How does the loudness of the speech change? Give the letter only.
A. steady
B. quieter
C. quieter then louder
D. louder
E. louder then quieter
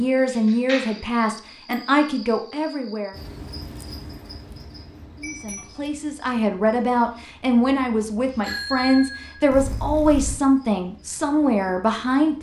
C.